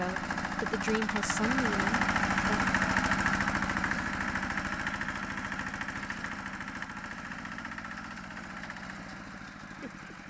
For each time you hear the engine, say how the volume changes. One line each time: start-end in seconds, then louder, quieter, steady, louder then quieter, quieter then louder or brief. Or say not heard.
0.0-10.2 quieter.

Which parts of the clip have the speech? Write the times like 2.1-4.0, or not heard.
0.0-2.6.